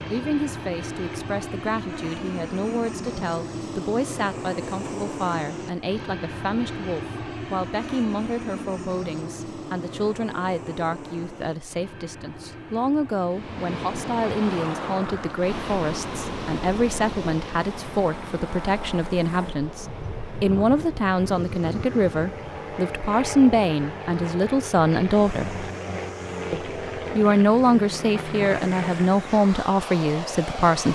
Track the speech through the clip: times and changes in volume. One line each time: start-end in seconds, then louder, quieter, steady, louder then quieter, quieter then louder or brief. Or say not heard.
0.1-25.6 louder
26.5-30.9 quieter.